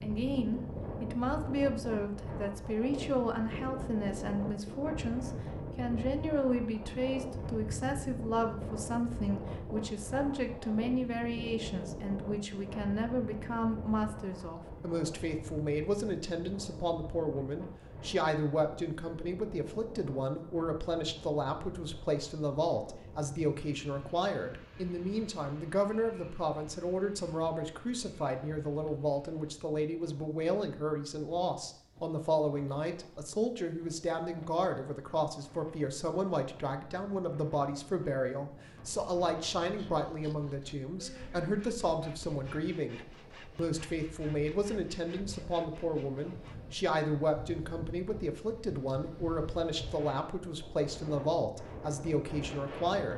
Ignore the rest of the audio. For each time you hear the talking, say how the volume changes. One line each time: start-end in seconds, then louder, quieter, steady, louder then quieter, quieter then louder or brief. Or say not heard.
0.0-53.1 steady.